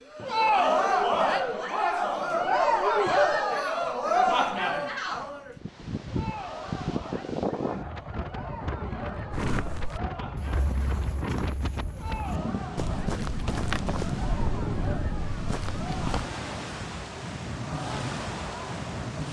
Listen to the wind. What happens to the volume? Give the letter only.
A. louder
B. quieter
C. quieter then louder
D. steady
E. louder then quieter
D.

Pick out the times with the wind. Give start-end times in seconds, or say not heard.
5.5-19.2.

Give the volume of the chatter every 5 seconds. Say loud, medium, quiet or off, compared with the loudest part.
loud, quiet, quiet, quiet.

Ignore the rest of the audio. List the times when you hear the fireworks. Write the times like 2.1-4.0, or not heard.
not heard.